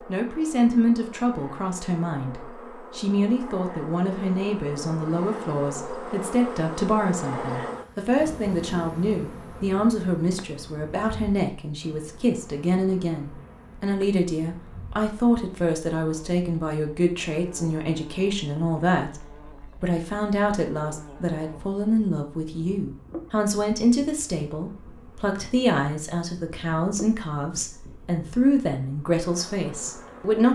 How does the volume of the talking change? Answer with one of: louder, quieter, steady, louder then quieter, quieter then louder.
steady.